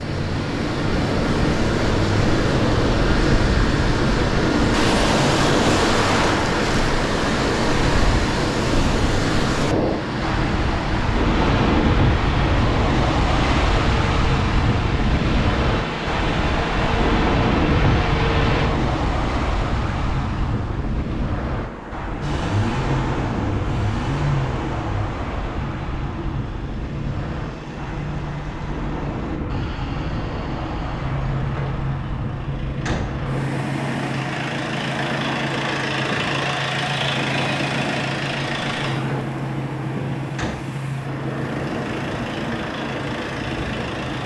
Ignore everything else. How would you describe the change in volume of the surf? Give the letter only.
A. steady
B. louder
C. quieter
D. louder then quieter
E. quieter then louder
C.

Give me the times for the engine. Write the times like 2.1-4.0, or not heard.
0.0-18.7, 22.2-44.2.